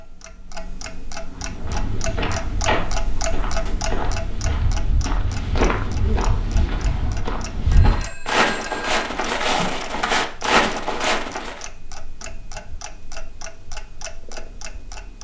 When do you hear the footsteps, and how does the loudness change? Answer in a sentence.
You can hear the footsteps from 1.3 to 11.7 s, getting louder.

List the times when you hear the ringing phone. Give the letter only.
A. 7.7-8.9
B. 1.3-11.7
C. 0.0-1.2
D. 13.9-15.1
A.